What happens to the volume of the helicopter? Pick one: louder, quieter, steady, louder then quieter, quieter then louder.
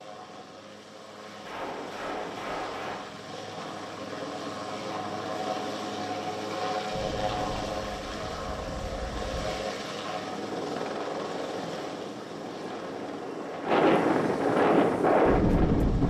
louder then quieter.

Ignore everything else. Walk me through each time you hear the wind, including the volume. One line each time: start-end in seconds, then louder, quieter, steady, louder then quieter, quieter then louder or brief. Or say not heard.
6.9-16.0 louder.